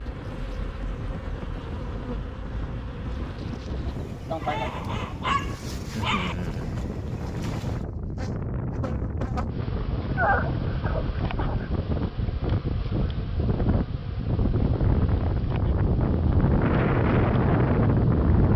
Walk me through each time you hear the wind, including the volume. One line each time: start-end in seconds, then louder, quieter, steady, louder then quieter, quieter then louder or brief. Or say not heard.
0.0-18.5 louder.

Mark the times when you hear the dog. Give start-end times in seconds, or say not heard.
4.4-6.3, 10.2-11.7.